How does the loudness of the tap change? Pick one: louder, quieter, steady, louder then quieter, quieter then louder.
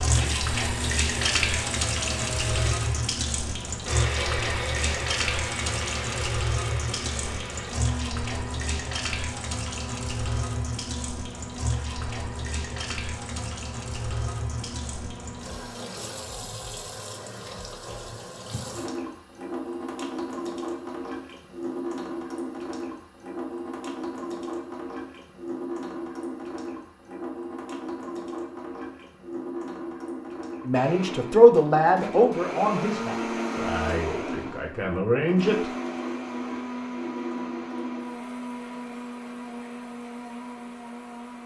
quieter.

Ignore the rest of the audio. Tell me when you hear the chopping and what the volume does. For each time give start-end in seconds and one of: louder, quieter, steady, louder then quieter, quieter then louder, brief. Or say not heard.
not heard.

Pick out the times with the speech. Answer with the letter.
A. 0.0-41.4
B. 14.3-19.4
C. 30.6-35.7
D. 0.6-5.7
C.